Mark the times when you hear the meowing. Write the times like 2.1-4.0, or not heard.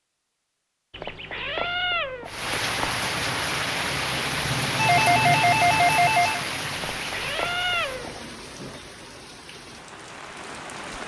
0.9-3.0, 6.8-8.2.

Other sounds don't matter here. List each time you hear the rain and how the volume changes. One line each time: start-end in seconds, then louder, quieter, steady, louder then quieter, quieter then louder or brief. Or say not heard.
2.2-11.0 quieter.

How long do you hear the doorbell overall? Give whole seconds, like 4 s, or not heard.
2 s.